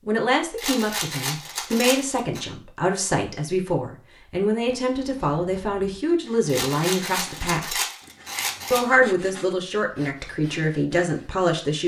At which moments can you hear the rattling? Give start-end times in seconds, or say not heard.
0.6-2.4, 6.5-8.8.